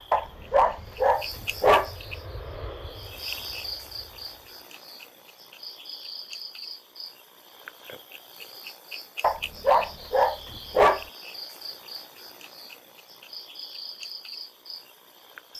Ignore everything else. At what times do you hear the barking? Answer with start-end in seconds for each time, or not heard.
0.1-1.9, 9.2-11.1.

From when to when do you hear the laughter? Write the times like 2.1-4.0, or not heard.
not heard.